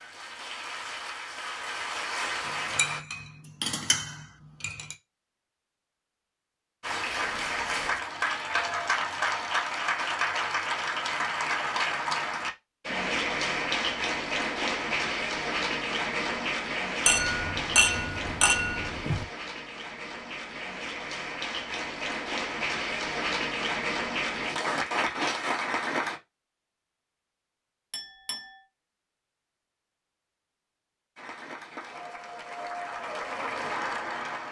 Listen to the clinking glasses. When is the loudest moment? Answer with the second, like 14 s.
18 s.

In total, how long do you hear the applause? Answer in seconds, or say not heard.
26 s.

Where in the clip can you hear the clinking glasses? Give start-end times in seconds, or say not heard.
2.5-5.0, 17.1-19.2, 27.9-28.6.